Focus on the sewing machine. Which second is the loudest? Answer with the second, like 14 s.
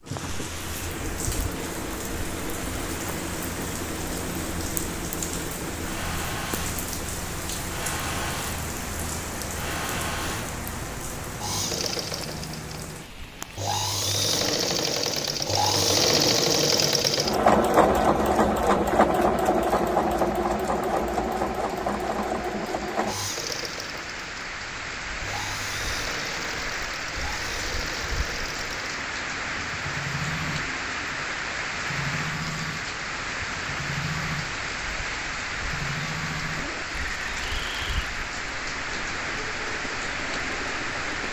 18 s.